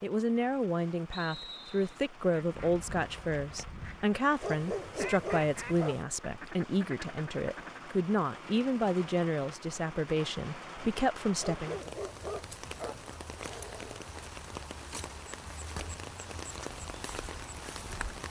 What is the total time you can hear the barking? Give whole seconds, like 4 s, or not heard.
3 s.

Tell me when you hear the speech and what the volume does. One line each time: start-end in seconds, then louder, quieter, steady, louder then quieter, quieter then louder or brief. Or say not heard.
0.0-11.9 steady.